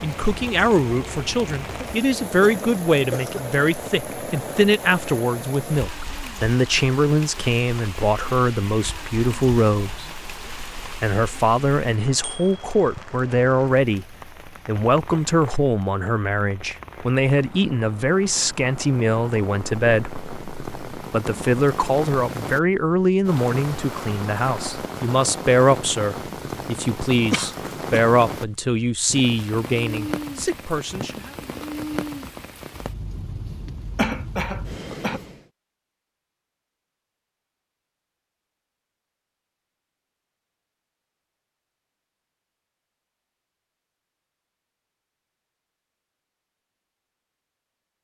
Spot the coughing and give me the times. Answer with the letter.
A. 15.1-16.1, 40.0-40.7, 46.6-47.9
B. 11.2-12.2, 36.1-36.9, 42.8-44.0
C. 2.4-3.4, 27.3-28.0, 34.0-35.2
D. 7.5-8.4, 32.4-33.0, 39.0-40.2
C.